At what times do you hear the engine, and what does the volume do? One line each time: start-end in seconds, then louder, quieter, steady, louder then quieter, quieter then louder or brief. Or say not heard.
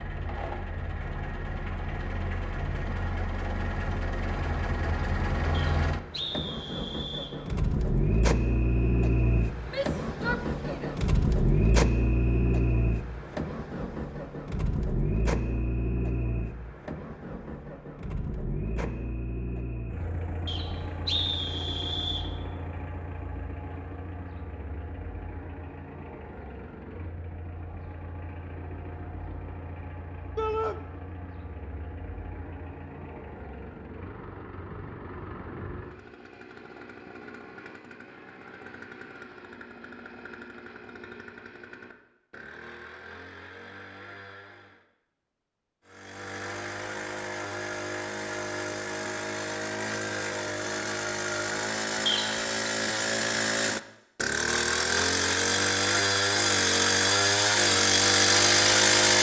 0.0-44.9 quieter
45.9-59.1 louder.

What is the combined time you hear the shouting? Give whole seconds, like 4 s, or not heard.
2 s.